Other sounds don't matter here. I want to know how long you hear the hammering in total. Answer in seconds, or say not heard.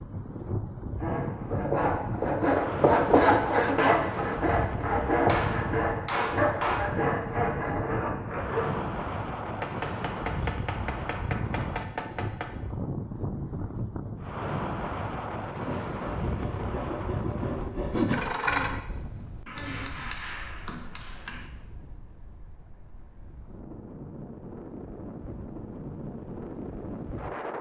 7 s.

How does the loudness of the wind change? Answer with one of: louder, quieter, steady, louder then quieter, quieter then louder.
quieter.